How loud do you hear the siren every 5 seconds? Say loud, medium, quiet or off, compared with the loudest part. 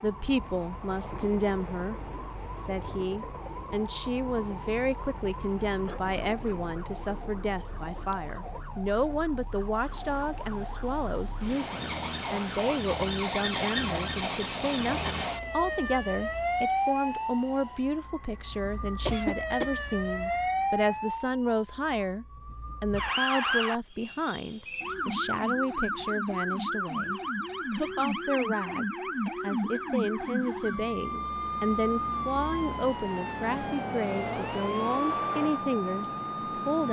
quiet, quiet, loud, loud, loud, loud, loud, loud.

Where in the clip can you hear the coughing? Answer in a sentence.
You can hear the coughing from 5.8 to 6.8 s, from 19.1 to 19.8 s and from 29.2 to 29.9 s.